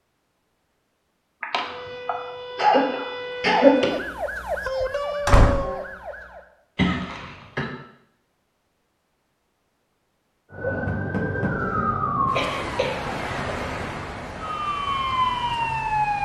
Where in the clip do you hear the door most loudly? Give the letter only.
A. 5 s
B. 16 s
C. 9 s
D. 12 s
A.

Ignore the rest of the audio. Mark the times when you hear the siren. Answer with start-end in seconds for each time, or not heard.
1.6-6.5, 10.5-16.2.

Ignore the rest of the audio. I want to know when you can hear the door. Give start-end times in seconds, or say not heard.
4.8-5.5, 10.8-11.5.